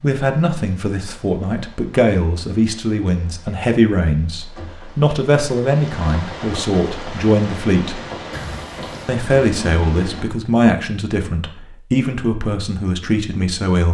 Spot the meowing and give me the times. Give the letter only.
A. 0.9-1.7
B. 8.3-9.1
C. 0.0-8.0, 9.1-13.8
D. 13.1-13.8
B.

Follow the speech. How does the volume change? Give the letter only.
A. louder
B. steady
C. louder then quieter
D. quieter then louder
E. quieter
B.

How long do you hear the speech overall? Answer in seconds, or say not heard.
13 s.